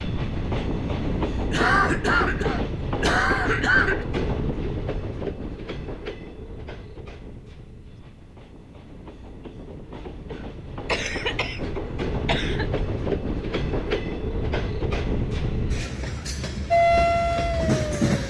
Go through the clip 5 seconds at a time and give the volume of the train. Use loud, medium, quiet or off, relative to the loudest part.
loud, medium, loud, loud.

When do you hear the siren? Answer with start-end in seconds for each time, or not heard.
16.7-18.2.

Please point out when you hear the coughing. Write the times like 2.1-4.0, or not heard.
1.5-4.0, 10.8-11.7, 12.2-12.8.